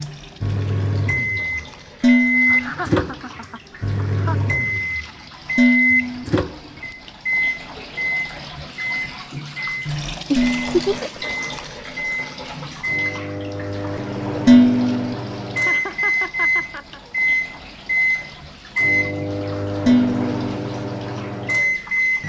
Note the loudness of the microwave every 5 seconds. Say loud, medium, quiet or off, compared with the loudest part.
loud, loud, medium, loud, loud.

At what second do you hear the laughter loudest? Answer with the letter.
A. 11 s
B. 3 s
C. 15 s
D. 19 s
A.